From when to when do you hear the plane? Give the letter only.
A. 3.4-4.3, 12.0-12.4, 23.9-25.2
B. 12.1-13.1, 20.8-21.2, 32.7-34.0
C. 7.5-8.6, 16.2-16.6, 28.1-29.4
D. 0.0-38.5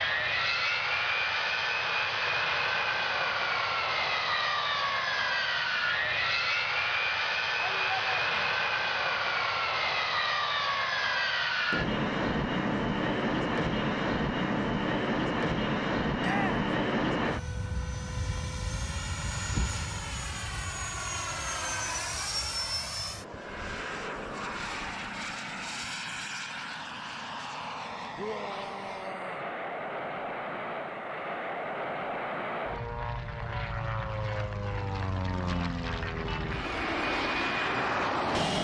D.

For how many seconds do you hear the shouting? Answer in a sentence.
The shouting can be heard for 3 seconds in total.